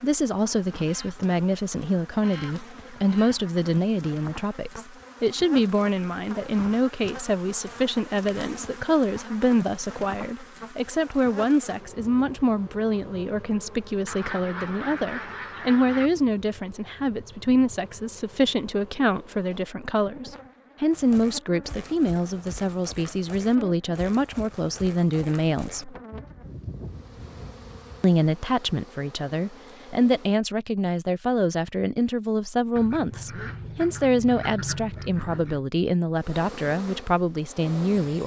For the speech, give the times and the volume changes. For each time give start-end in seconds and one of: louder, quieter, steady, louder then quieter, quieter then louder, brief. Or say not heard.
0.0-25.9 steady
28.0-38.2 steady.